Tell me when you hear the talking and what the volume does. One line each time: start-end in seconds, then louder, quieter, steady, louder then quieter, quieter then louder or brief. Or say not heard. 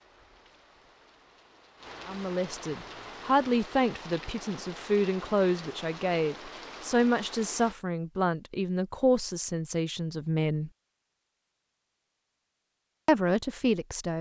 2.0-10.7 steady
13.1-14.1 brief.